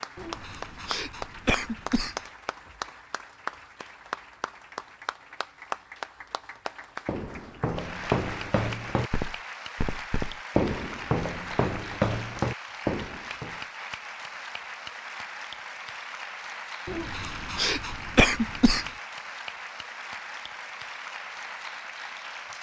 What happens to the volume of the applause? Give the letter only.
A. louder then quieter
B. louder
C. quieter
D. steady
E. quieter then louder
D.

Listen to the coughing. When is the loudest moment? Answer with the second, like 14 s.
18 s.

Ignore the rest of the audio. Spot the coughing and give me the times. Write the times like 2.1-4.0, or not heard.
0.1-2.2, 16.9-18.9.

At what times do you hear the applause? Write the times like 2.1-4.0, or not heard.
0.0-22.5.